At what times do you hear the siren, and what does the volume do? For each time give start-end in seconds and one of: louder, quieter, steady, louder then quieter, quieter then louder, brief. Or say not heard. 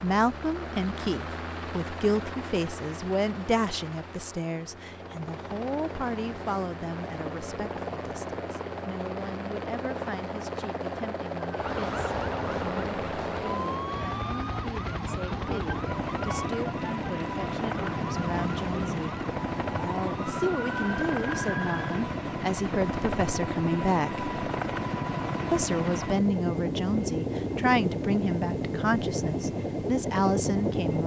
11.4-22.1 steady.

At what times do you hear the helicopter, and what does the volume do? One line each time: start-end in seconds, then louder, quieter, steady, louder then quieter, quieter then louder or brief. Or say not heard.
0.0-31.0 louder.